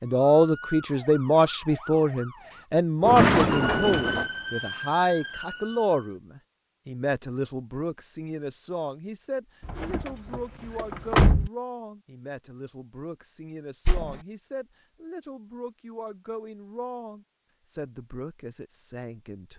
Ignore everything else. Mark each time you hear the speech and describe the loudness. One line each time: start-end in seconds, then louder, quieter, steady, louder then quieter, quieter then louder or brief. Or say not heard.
0.0-19.5 quieter.